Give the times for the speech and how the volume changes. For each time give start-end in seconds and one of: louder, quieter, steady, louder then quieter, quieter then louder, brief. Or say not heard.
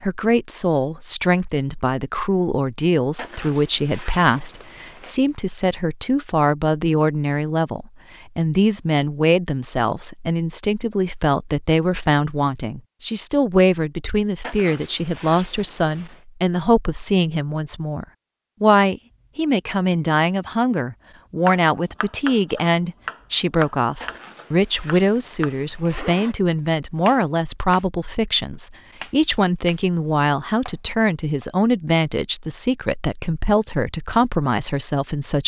0.0-35.4 steady.